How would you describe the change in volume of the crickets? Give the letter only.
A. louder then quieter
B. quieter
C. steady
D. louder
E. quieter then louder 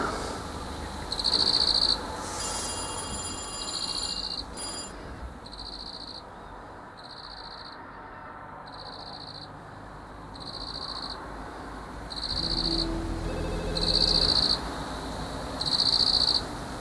E.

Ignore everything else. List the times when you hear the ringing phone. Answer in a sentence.
You can hear the ringing phone from 2.4 to 5.0 s and from 12.3 to 14.3 s.